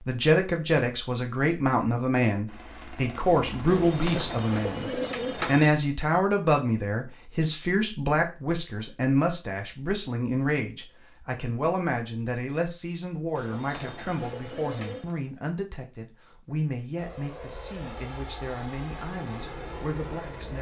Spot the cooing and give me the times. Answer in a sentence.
You can hear the cooing from 3.6 to 5.7 s and from 13.3 to 15.2 s.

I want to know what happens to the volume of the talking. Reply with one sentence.
The loudness of the talking goes down.